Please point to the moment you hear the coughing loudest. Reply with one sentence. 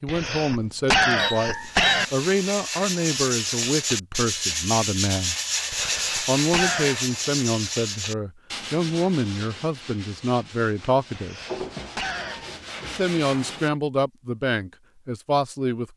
The volume of the coughing peaks at 1 second.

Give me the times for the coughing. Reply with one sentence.
The coughing can be heard from 0.1 to 2.0 s, from 5.7 to 7.0 s and from 11.2 to 12.6 s.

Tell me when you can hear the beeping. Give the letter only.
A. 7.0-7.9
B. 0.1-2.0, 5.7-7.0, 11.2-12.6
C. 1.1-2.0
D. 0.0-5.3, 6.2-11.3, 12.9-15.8
C.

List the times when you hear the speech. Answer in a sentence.
The speech can be heard from 0.0 to 5.3 s, from 6.2 to 11.3 s and from 12.9 to 15.8 s.